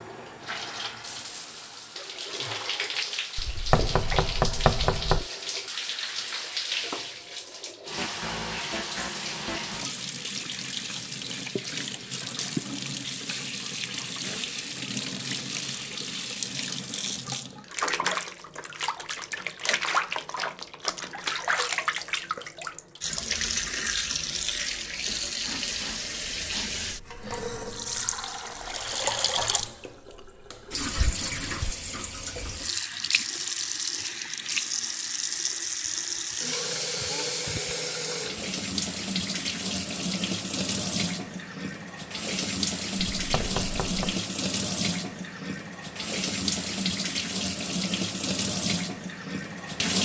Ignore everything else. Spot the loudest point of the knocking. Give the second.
5 s.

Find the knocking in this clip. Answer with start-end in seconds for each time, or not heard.
3.4-5.2, 43.1-44.1.